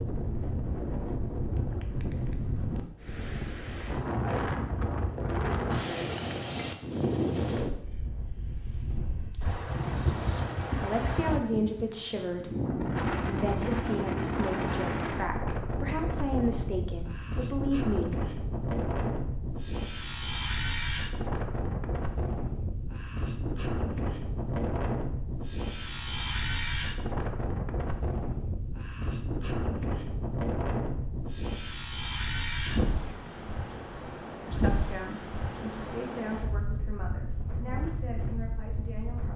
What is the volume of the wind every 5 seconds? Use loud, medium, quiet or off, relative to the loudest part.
loud, loud, loud, loud, loud, loud, loud, medium.